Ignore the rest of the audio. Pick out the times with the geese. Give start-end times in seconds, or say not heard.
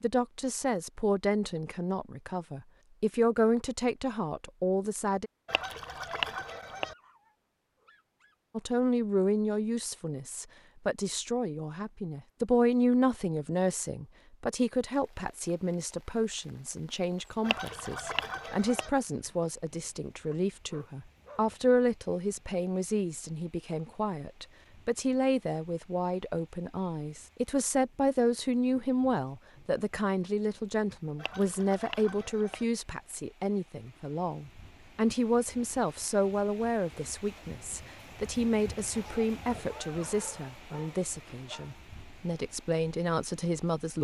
5.5-7.0, 17.4-18.9, 31.1-32.6.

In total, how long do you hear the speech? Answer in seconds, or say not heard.
41 s.